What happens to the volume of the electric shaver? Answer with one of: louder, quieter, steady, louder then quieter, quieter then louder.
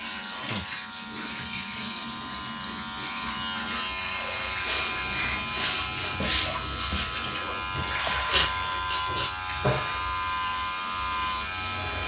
louder.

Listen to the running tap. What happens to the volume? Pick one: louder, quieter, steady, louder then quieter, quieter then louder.
steady.